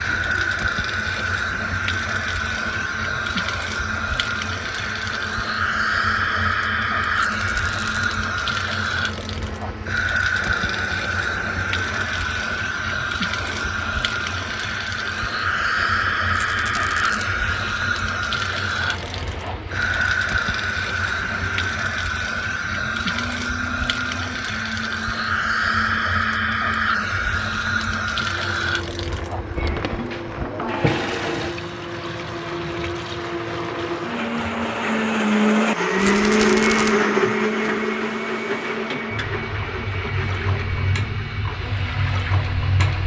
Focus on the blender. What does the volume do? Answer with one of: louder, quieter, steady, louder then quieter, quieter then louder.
louder.